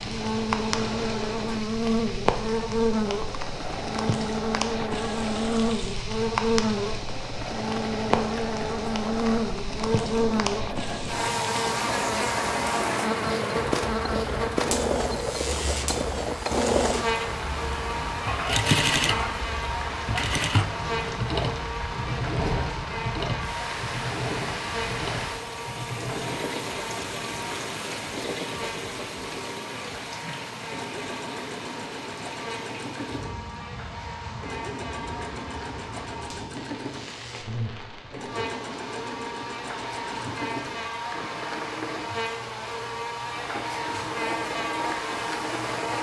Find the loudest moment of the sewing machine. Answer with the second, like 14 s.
19 s.